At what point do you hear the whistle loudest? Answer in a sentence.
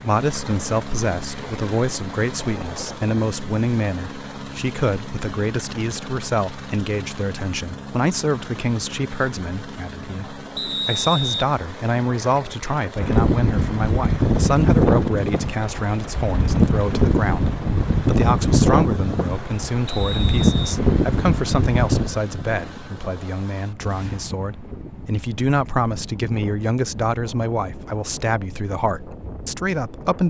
The volume of the whistle peaks at 11 seconds.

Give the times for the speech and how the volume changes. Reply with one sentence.
You can hear the speech from 0.0 to 30.2 s, at a steady volume.